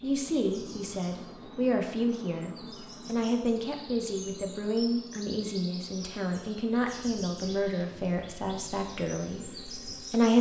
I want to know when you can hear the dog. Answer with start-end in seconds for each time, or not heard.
not heard.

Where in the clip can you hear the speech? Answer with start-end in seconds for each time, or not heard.
0.0-10.3.